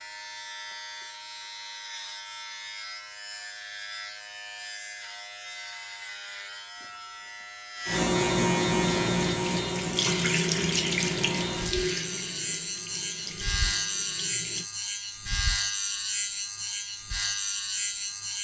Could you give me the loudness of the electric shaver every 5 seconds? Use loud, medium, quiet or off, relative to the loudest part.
medium, loud, loud, loud.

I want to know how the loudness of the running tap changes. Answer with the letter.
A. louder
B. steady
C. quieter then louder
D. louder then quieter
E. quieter
E.